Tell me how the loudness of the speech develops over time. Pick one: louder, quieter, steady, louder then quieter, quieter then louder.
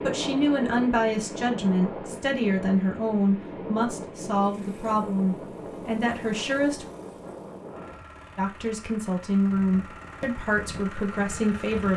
steady.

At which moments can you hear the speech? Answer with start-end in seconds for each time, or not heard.
0.0-6.8, 8.3-11.9.